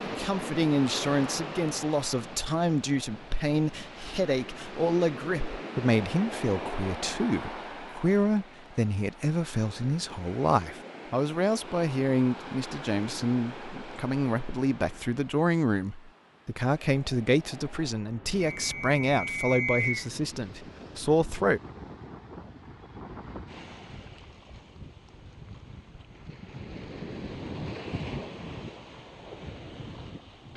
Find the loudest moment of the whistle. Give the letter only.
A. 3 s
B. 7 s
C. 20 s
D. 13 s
C.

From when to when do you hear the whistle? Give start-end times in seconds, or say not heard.
18.4-20.1.